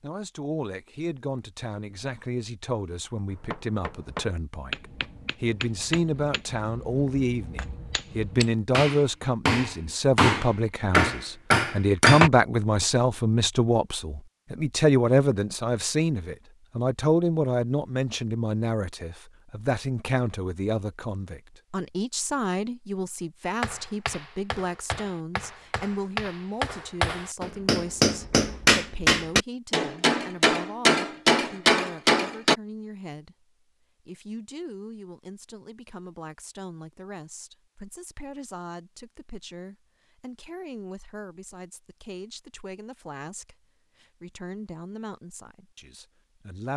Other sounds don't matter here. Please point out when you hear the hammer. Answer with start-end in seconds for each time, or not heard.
3.3-12.3, 23.6-32.5.